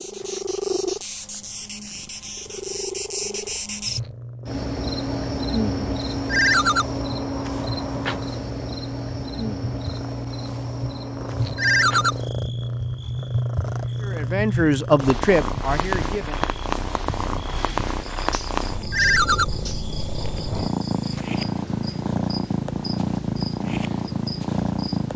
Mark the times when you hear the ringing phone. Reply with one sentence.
The ringing phone can be heard from 6.2 to 6.8 s, from 11.6 to 12.2 s and from 18.9 to 19.4 s.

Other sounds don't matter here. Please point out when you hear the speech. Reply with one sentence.
You can hear the speech from 14.0 to 16.6 s.